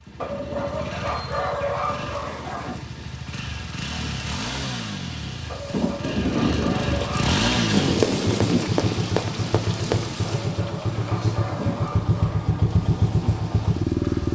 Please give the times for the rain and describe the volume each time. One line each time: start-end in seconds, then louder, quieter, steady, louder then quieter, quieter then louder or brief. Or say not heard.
0.1-14.3 louder then quieter.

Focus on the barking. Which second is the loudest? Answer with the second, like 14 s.
2 s.